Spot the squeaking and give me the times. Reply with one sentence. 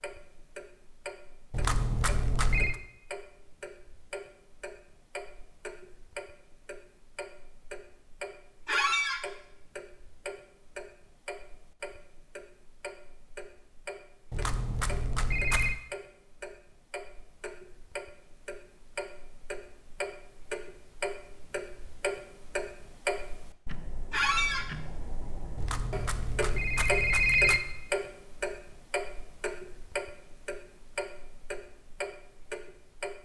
The squeaking can be heard from 8.7 to 9.2 s and from 24.1 to 24.6 s.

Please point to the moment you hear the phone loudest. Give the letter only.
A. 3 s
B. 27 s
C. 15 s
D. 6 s
B.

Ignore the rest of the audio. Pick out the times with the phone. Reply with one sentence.
You can hear the phone from 1.5 to 2.8 s, from 14.3 to 15.8 s and from 25.6 to 27.6 s.